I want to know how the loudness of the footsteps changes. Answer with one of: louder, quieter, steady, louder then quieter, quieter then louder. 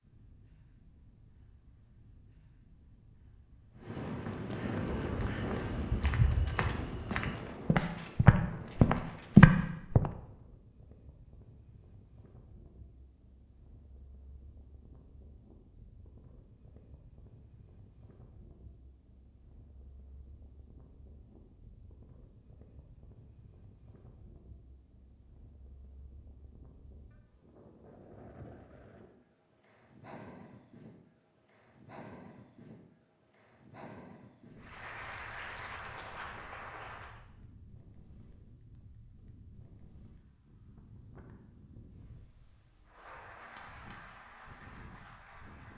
louder.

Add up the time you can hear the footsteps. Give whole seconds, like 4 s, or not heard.
5 s.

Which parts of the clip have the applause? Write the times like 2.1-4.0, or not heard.
34.5-37.2, 42.9-45.7.